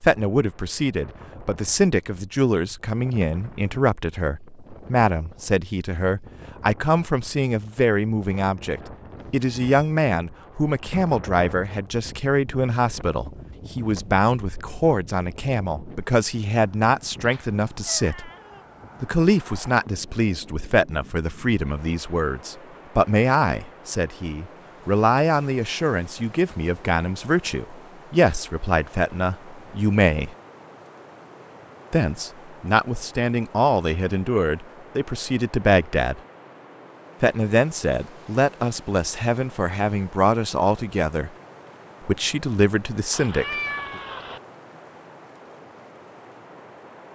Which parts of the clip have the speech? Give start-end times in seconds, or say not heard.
0.0-18.3, 19.0-30.3, 31.9-36.2, 37.2-41.3, 42.0-44.0.